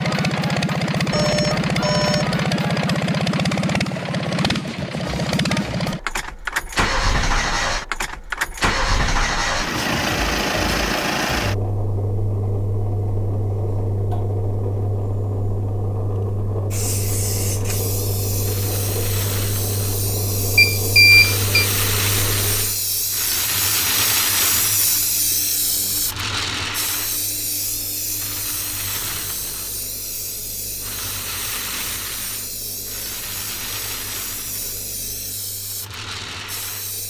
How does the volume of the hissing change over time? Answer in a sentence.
The volume of the hissing goes up, then down.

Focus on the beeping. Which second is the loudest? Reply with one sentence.
The loudest moment of the beeping is at 21 seconds.